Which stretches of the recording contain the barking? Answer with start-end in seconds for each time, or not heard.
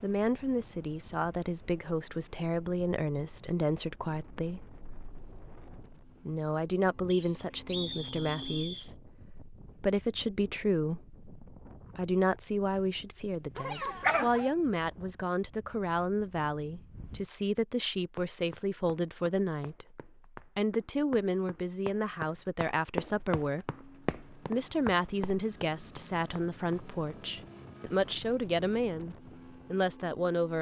13.6-14.5.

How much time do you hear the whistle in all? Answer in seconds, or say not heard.
2 s.